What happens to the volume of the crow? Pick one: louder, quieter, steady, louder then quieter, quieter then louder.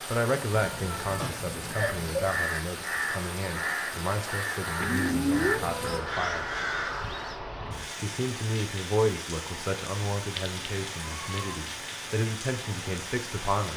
steady.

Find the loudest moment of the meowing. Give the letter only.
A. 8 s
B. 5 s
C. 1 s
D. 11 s
B.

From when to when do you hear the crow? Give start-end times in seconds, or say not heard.
1.7-7.4.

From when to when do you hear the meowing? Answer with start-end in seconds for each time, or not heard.
0.5-2.3, 4.8-6.0, 10.3-11.6.